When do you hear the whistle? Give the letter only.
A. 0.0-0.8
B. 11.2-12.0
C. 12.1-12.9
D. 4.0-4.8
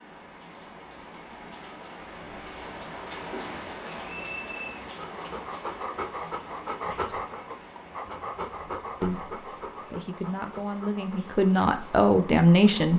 D.